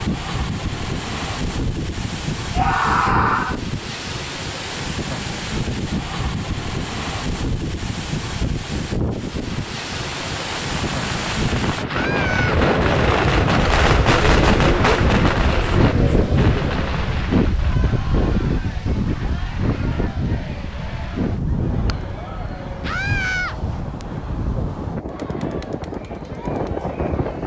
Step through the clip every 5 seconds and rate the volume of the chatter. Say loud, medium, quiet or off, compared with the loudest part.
off, off, loud, medium, quiet, quiet.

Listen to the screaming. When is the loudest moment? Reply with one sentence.
The loudest moment of the screaming is at 3 seconds.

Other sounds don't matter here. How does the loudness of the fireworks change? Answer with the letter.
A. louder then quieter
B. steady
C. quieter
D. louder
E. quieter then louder
A.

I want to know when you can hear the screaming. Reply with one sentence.
You can hear the screaming from 2.5 to 3.5 s, from 11.8 to 12.6 s and from 22.8 to 23.6 s.